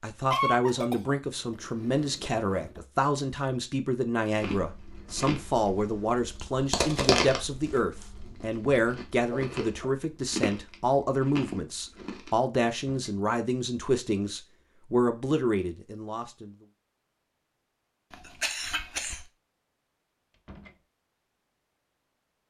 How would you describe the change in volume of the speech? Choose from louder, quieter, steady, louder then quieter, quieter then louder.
steady.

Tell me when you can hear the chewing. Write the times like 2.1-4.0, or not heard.
4.4-12.3.